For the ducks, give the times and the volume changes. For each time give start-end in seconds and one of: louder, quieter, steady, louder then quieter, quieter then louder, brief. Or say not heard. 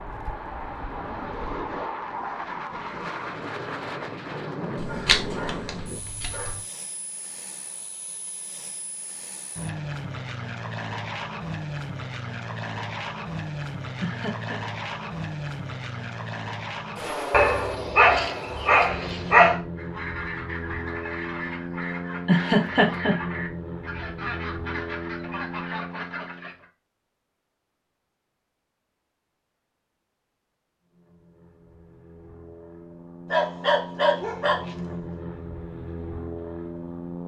19.8-26.6 steady.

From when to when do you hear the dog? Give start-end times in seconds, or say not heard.
4.8-6.5, 17.3-19.6, 33.3-34.8.